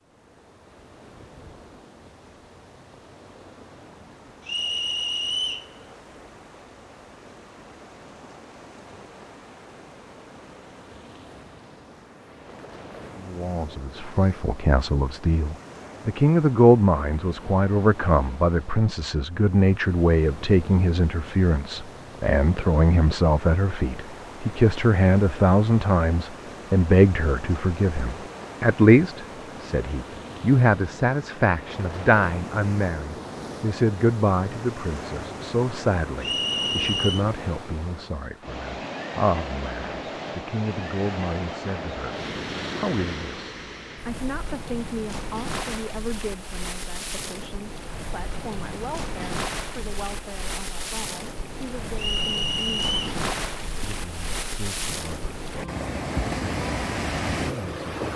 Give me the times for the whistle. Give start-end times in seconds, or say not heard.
4.5-5.7, 36.2-37.2, 52.0-53.1.